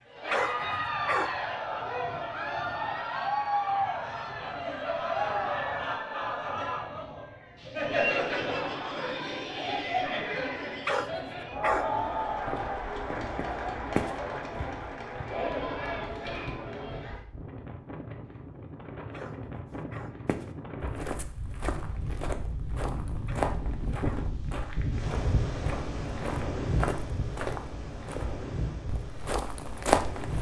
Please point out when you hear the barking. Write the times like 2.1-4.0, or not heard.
0.3-1.4, 10.8-11.9, 19.1-20.2, 23.2-24.4.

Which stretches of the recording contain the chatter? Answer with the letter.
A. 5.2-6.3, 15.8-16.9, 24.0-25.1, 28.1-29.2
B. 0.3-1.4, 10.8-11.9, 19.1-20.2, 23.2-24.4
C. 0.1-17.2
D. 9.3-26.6
C.